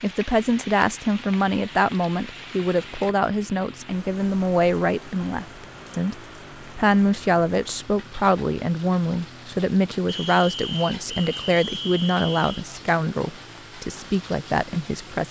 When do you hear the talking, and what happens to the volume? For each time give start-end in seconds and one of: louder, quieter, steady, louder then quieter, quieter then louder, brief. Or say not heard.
0.0-15.2 steady.